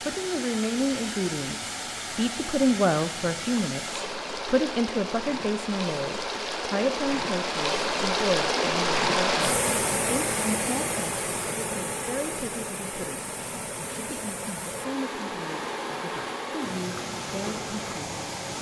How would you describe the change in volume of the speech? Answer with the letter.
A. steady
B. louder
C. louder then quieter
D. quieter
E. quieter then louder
D.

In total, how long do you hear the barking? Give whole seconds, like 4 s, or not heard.
not heard.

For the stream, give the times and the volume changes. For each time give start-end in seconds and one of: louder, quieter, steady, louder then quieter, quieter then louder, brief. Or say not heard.
0.0-18.5 louder then quieter.